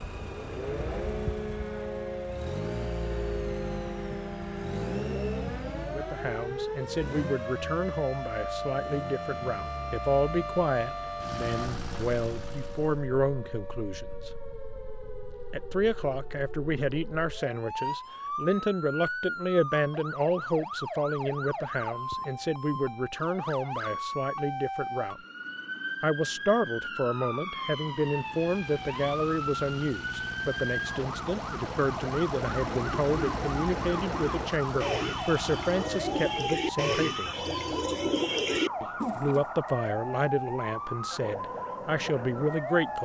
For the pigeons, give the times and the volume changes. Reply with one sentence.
The pigeons can be heard from 32.5 to 39.5 s, getting louder.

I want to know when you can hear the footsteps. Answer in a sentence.
The footsteps can't be heard in this clip.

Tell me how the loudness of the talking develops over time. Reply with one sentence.
The loudness of the talking stays about the same.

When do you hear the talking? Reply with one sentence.
You can hear the talking from 5.8 to 14.3 s, from 15.5 to 25.2 s, from 26.0 to 37.5 s and from 38.8 to 43.0 s.